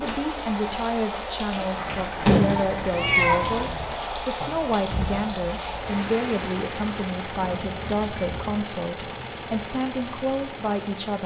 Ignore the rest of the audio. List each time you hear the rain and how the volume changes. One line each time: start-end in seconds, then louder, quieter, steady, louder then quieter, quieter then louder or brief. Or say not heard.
0.0-11.2 quieter.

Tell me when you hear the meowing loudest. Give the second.
3 s.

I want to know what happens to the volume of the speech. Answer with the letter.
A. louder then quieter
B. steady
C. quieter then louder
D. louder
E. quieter
B.